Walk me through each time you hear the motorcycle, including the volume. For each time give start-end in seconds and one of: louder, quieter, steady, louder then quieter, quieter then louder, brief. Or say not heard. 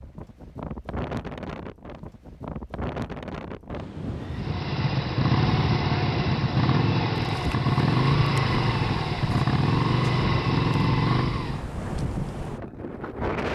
4.3-11.7 steady.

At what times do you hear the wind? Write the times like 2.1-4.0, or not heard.
0.0-13.5.